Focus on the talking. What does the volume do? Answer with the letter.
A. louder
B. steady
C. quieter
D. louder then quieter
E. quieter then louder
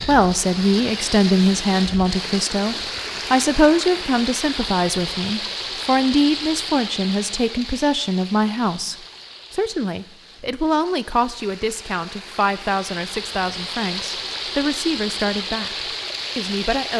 C.